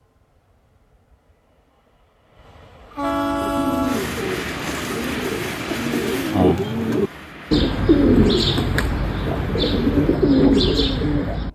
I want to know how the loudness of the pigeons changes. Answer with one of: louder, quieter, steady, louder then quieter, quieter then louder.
louder.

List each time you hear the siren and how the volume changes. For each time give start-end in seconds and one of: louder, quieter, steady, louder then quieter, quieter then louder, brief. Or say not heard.
not heard.